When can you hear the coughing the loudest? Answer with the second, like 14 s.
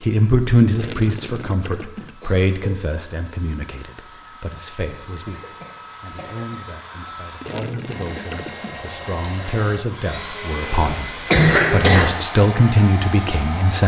11 s.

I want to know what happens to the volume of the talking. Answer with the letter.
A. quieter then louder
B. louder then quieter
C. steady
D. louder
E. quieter
A.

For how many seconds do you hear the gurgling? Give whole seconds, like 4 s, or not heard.
3 s.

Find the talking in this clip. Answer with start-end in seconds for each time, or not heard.
0.0-13.8.